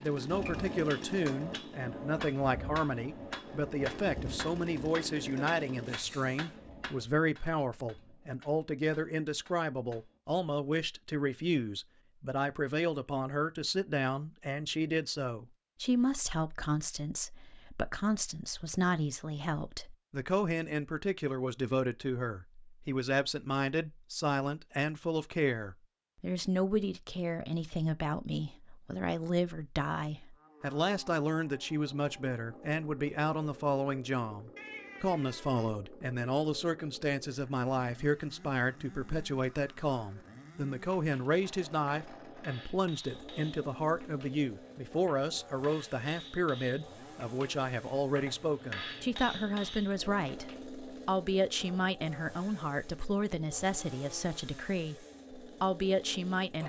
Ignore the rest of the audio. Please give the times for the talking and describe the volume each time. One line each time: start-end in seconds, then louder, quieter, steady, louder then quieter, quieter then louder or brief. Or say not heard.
0.0-56.6 steady.